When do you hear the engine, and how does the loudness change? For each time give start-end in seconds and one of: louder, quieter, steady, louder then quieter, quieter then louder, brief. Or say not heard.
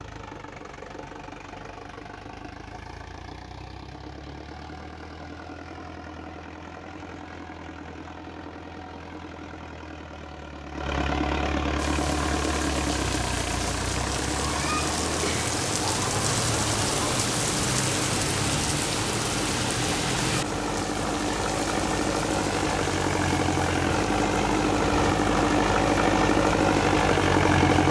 0.0-27.8 louder.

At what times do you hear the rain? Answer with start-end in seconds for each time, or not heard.
11.8-27.8.